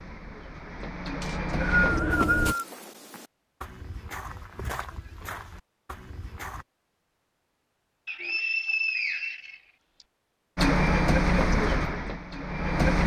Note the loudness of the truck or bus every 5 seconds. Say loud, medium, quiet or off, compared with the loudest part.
medium, off, loud.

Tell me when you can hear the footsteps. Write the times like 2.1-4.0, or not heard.
2.1-6.7.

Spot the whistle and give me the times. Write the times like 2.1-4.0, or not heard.
1.2-2.6, 8.1-10.1.